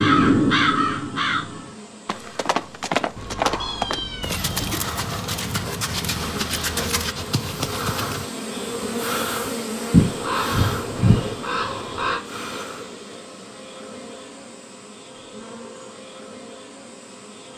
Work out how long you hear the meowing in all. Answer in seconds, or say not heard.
2 s.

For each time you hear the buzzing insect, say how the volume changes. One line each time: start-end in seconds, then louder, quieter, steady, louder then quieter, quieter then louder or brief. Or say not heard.
0.1-17.5 louder then quieter.